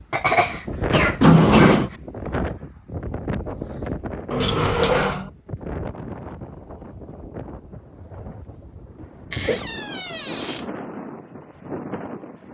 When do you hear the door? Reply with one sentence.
The door can be heard from 1.2 to 1.9 s, from 4.4 to 5.2 s and from 9.3 to 10.7 s.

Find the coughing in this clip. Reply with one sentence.
The coughing can be heard from 0.1 to 1.9 s, from 4.3 to 5.3 s and from 8.9 to 9.7 s.